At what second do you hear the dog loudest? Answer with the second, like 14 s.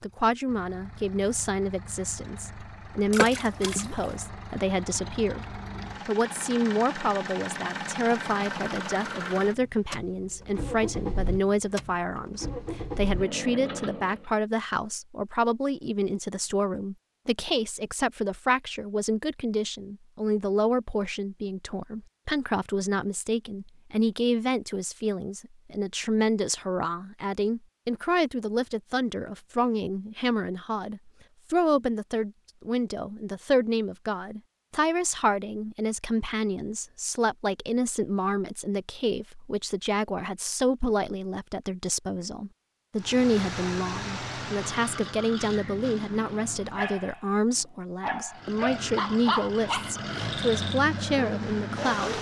49 s.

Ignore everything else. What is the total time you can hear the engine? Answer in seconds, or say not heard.
22 s.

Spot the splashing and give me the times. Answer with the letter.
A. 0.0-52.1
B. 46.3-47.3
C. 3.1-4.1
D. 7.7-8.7
C.